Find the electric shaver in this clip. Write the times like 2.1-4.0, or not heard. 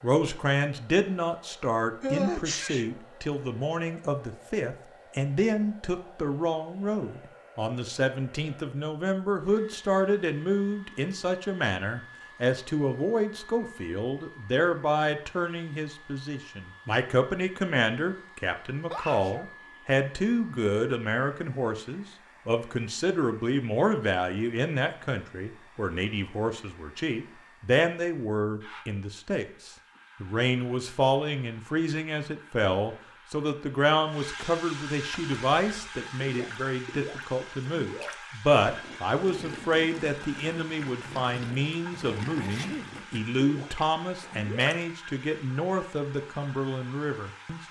not heard.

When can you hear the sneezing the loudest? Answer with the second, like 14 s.
2 s.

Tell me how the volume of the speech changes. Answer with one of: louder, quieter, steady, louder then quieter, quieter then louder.
steady.